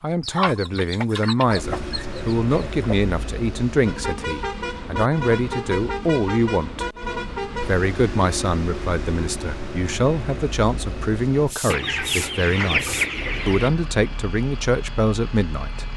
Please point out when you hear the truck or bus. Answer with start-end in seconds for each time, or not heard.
1.4-15.9.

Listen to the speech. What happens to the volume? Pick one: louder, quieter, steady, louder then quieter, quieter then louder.
steady.